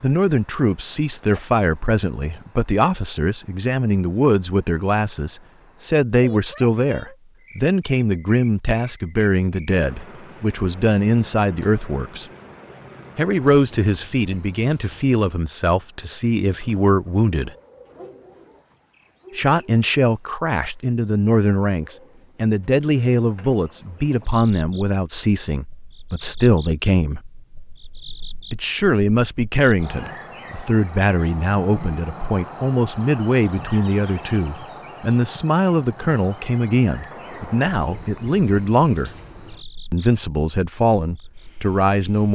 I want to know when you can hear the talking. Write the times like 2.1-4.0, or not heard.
0.0-12.2, 13.2-17.5, 19.4-27.2, 28.5-39.1, 39.9-42.3.